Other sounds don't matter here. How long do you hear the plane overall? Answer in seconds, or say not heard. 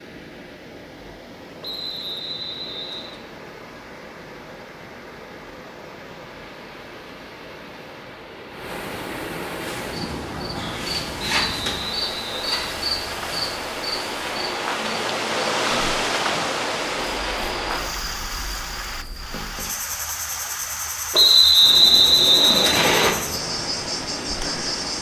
not heard.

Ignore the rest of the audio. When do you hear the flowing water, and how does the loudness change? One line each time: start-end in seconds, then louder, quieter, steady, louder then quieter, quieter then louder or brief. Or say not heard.
0.0-24.9 louder then quieter.